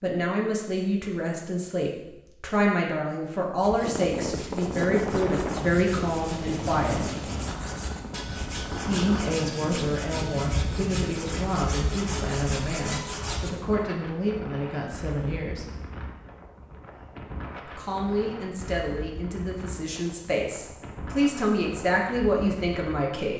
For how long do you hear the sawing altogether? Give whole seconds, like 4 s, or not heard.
10 s.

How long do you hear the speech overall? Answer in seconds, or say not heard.
20 s.